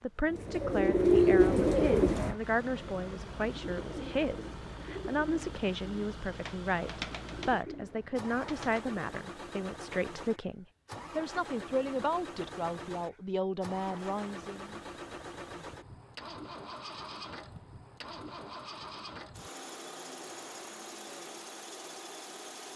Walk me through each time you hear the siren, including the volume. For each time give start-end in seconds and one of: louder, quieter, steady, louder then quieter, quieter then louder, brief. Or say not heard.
not heard.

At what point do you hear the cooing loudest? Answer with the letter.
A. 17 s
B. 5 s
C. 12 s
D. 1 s
D.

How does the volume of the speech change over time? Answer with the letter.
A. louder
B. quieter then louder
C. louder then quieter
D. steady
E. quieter
D.